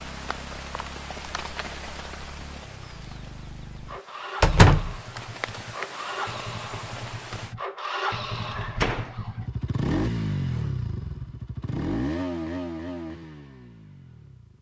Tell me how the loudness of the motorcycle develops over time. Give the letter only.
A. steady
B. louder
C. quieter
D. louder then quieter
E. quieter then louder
B.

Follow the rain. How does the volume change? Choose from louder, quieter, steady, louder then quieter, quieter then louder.
quieter then louder.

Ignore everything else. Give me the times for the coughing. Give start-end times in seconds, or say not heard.
not heard.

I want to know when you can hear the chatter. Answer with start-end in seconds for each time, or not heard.
not heard.